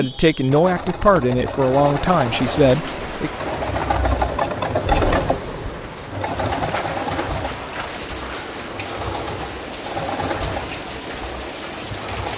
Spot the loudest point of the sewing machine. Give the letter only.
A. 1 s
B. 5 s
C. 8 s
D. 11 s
B.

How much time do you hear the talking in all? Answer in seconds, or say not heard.
3 s.